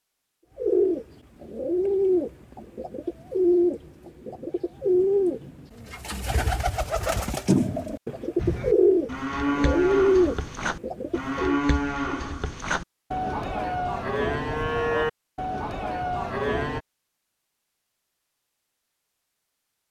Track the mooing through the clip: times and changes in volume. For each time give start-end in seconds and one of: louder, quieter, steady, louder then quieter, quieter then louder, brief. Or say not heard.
8.3-16.8 steady.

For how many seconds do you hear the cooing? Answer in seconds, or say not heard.
11 s.